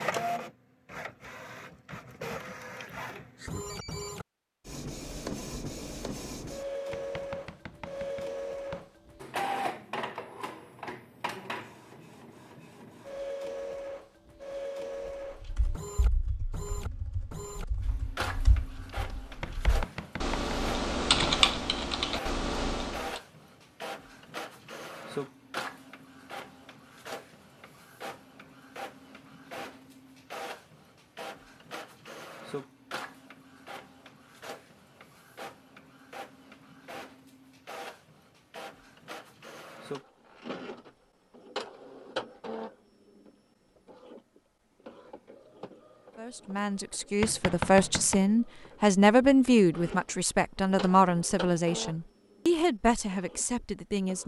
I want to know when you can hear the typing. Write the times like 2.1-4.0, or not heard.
15.3-23.2.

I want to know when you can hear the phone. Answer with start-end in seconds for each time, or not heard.
3.5-4.2.